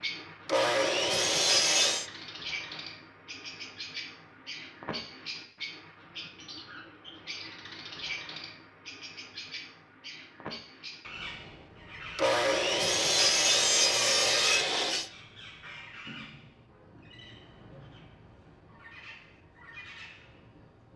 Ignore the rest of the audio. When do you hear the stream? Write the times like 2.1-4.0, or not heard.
not heard.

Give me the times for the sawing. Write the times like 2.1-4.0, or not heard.
0.5-2.0, 12.2-15.1.